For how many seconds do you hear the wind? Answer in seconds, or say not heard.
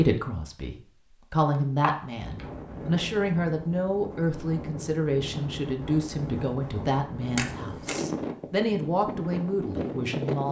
8 s.